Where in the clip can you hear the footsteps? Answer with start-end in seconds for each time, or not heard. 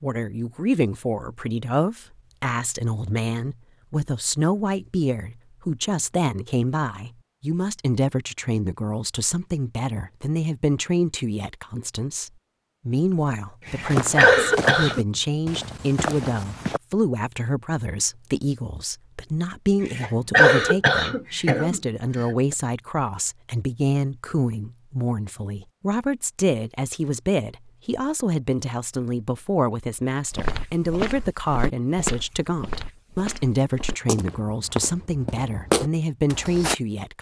13.7-16.8, 30.3-36.8.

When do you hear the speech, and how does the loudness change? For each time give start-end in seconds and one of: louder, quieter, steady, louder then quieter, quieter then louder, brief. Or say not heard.
0.0-37.1 steady.